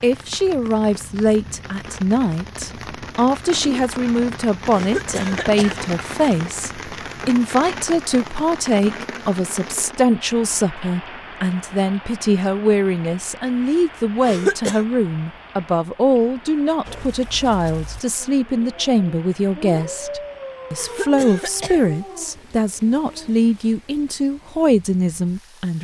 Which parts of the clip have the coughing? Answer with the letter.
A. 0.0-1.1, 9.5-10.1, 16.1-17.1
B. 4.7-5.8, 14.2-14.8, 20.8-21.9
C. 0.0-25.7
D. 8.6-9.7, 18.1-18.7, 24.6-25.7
B.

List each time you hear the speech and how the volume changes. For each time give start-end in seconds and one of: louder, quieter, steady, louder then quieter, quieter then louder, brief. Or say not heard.
0.0-25.7 steady.